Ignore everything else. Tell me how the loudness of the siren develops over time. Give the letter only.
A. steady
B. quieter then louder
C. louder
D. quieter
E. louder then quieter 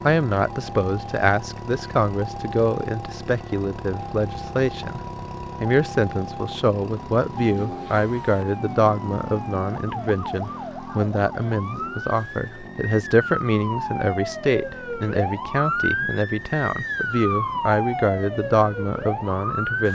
C.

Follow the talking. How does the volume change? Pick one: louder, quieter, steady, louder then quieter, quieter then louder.
steady.